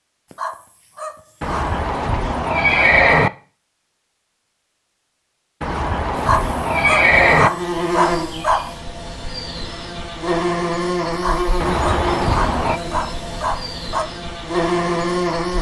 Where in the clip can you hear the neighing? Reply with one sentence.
The neighing can be heard from 1.4 to 3.3 s, from 5.6 to 7.5 s and from 11.6 to 12.8 s.